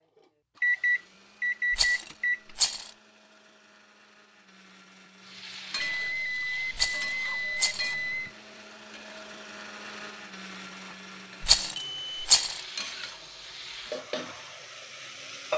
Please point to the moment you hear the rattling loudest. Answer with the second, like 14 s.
12 s.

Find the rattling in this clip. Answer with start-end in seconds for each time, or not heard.
1.7-2.9, 6.8-8.0, 11.4-12.6.